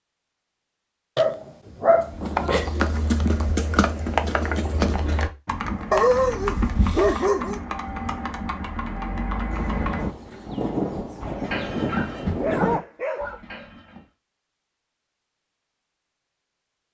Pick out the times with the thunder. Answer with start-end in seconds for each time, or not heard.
9.5-12.8.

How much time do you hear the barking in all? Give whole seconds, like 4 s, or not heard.
5 s.